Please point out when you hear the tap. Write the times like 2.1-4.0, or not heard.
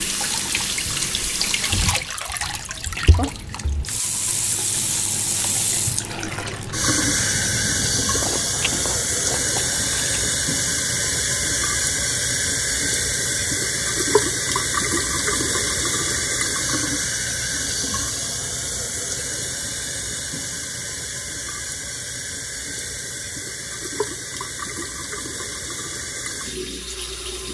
0.0-27.4.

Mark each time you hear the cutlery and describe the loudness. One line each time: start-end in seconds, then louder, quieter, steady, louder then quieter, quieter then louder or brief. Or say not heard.
not heard.